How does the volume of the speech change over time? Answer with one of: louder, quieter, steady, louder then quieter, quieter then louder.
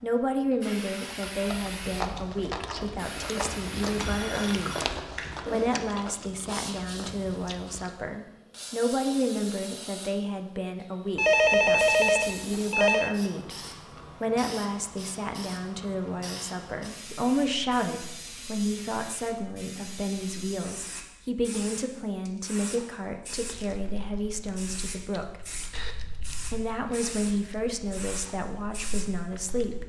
steady.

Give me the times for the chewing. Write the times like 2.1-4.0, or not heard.
1.1-8.1, 23.4-29.8.